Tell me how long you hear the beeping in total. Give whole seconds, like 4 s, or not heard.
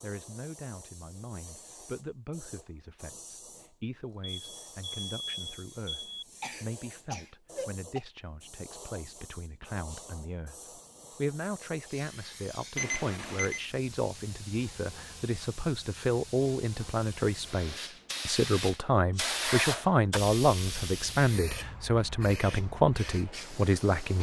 3 s.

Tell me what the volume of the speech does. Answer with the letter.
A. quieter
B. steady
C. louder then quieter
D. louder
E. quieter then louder
D.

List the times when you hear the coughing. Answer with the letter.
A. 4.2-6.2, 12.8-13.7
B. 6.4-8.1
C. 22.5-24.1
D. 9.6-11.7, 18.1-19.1
B.